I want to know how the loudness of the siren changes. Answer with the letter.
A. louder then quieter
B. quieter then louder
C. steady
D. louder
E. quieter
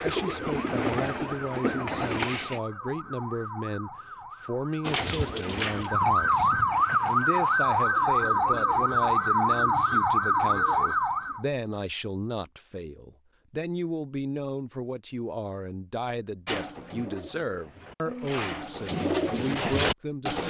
D.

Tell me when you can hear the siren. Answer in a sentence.
You can hear the siren from 0.0 to 11.4 s.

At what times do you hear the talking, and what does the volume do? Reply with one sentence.
The talking can be heard from 0.0 to 20.4 s, at a steady volume.